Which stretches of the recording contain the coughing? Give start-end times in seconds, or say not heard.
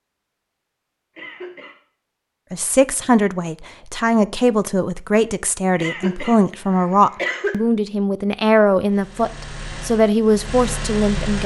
1.1-1.8, 5.8-7.6.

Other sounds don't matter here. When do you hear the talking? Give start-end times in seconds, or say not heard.
2.5-11.4.